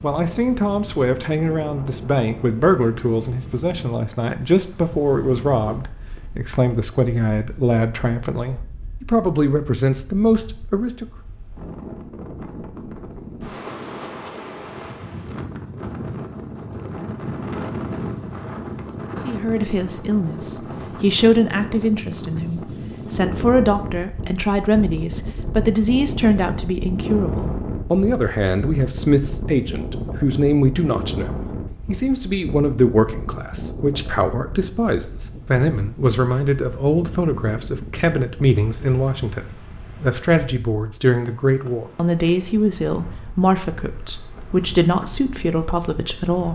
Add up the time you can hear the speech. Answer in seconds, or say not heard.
38 s.